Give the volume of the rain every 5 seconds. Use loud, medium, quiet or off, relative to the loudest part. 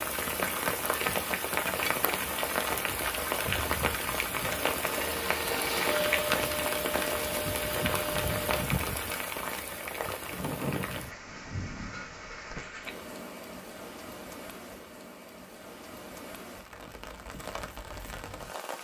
loud, loud, medium, quiet.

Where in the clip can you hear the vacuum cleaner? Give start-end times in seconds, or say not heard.
5.0-8.4.